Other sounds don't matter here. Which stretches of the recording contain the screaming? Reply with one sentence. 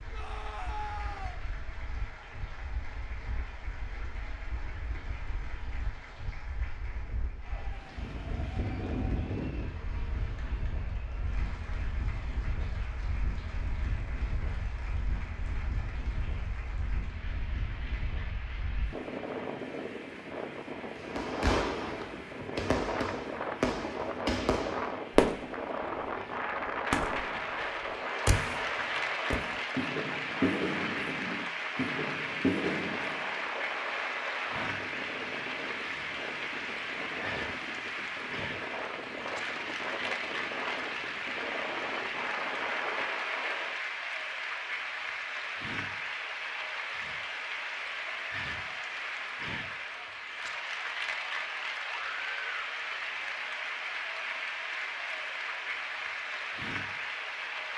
You can hear the screaming from 0.1 to 1.4 s and from 51.9 to 52.7 s.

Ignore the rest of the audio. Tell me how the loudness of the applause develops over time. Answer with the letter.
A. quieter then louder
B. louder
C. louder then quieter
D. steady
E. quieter
B.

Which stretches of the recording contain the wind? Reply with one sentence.
You can hear the wind from 0.0 to 43.8 s.